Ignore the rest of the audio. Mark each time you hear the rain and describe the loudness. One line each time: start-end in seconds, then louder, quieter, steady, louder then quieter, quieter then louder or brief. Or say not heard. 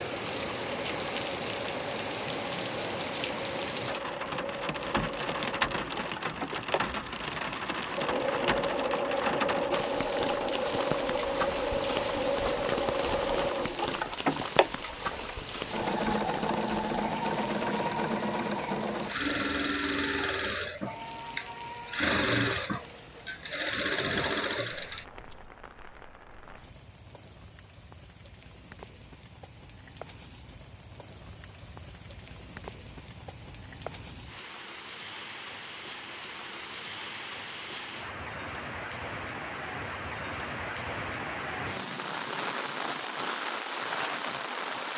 0.0-44.9 quieter then louder.